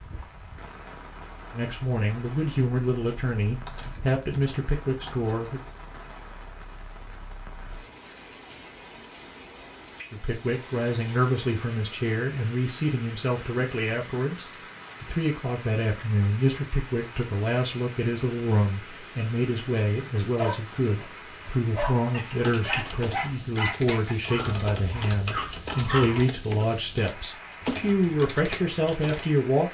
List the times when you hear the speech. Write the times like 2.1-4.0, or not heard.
1.5-5.6, 10.1-29.7.